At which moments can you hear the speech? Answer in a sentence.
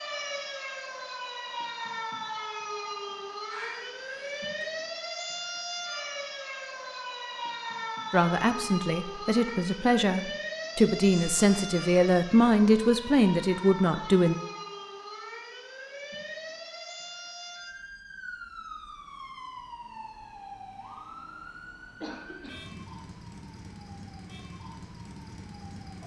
You can hear the speech from 8.1 to 14.3 s.